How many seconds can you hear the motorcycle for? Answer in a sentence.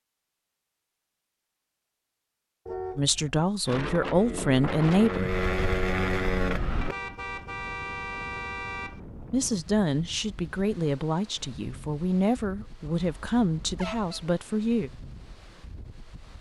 You can hear the motorcycle for 3 seconds altogether.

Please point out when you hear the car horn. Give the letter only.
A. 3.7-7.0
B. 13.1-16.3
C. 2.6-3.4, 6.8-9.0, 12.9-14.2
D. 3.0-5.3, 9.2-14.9
C.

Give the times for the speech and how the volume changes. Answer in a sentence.
You can hear the speech briefly from 3.0 to 5.3 s; and from 9.2 to 14.9 s, at a steady volume.